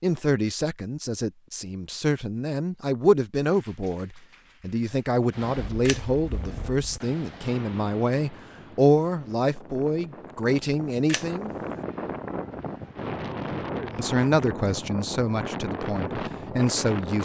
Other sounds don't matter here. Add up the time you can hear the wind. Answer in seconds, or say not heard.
12 s.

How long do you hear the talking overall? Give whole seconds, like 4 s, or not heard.
15 s.